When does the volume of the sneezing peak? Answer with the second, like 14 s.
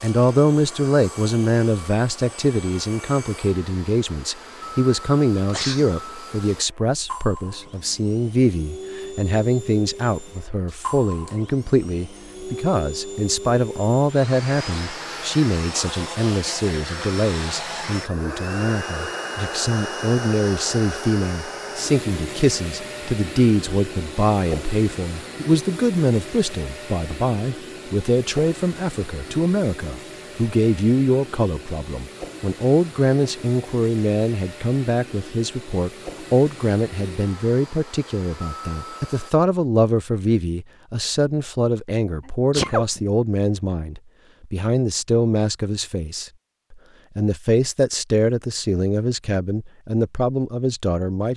43 s.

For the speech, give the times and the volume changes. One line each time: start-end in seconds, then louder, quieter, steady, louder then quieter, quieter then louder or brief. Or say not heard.
0.0-51.3 steady.